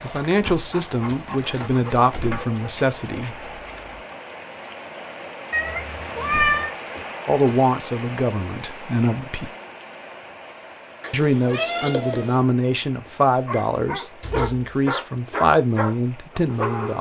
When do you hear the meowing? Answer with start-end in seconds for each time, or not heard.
5.5-6.7, 11.0-12.4.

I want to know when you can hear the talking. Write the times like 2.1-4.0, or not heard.
0.0-3.5, 7.2-9.5, 11.1-16.9.